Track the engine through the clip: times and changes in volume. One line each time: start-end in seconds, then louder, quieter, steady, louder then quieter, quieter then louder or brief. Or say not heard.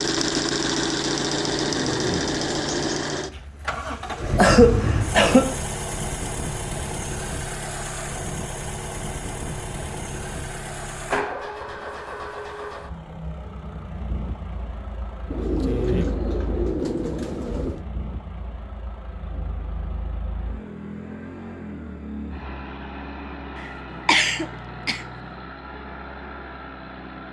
0.0-27.2 quieter.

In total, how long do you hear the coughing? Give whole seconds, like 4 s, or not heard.
2 s.